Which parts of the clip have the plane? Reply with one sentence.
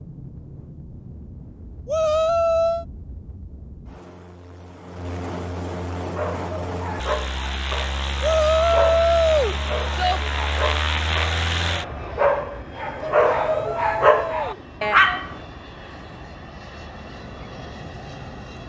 You can hear the plane from 0.0 to 18.6 s.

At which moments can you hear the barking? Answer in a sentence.
You can hear the barking from 6.0 to 15.3 s.